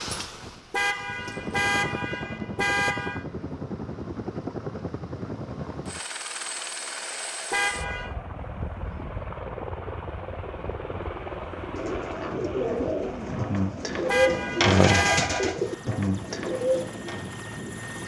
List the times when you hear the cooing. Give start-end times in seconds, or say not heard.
11.8-17.4.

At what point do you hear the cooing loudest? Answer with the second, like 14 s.
15 s.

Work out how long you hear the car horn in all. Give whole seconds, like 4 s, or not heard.
5 s.